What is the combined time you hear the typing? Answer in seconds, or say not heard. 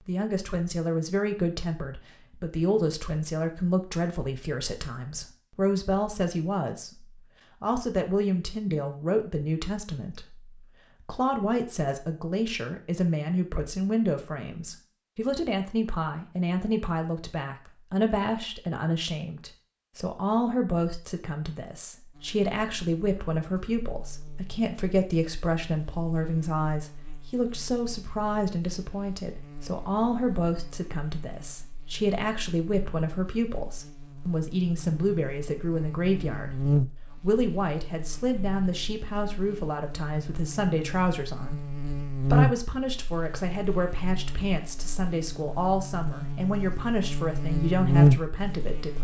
not heard.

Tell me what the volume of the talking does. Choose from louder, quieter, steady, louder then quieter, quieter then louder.
steady.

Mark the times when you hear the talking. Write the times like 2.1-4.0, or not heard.
0.1-48.9.